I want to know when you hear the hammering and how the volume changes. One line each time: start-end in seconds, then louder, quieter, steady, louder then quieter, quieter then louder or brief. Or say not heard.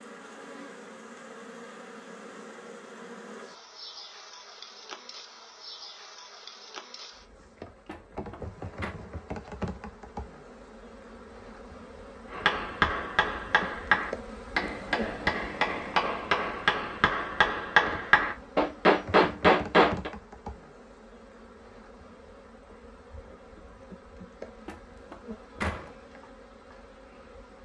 12.3-20.1 louder.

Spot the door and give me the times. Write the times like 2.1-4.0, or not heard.
7.8-8.9, 24.6-25.9.